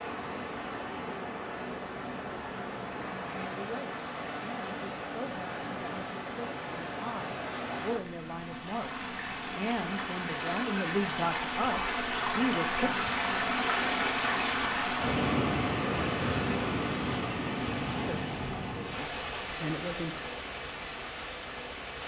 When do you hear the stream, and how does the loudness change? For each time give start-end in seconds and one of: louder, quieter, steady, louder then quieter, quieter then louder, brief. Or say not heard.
0.0-22.0 louder then quieter.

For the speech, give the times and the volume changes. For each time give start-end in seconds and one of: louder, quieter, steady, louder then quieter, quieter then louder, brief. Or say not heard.
3.5-12.9 louder
18.1-20.2 brief.